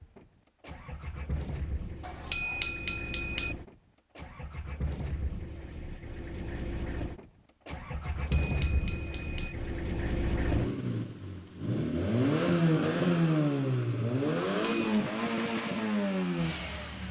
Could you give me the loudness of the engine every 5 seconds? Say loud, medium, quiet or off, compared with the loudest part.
quiet, medium, loud, loud.